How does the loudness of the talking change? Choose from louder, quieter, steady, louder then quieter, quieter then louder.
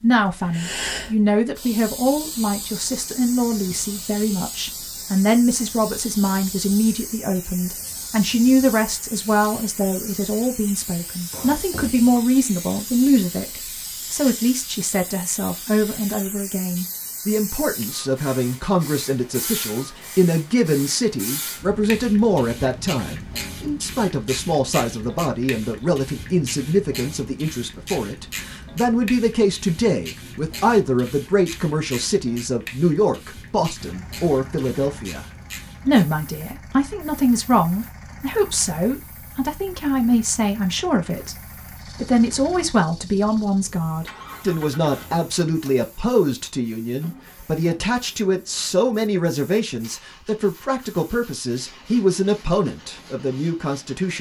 steady.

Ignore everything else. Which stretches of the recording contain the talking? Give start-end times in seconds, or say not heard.
0.0-35.2, 35.9-41.4, 42.0-54.1.